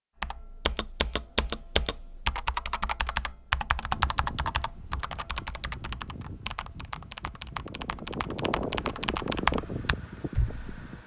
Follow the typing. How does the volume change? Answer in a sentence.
The volume of the typing goes down, then up.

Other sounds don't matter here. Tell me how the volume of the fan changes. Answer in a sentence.
The loudness of the fan goes up.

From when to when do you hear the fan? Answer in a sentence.
You can hear the fan from 3.9 to 11.0 s.